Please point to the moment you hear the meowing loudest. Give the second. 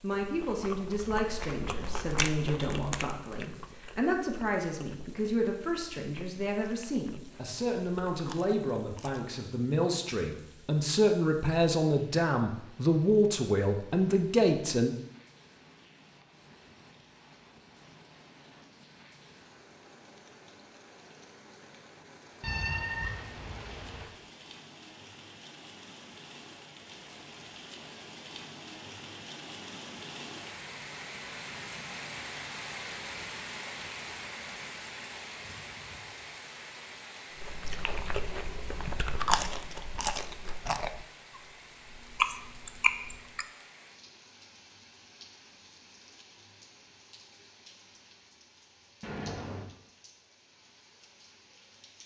23 s.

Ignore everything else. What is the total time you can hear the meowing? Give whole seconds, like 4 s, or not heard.
2 s.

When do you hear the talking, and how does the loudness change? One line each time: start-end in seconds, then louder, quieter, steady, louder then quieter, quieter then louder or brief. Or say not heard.
0.0-14.9 louder.